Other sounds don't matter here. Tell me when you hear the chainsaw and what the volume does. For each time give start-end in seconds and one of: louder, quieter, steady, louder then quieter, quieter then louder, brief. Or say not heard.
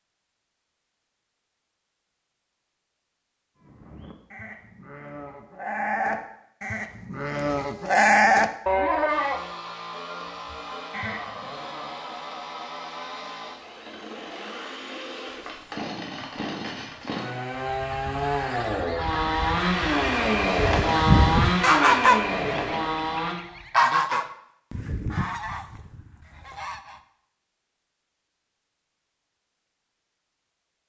9.1-23.4 louder.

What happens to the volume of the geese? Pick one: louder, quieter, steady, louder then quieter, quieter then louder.
louder then quieter.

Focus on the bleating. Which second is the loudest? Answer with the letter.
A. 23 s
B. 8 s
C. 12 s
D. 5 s
B.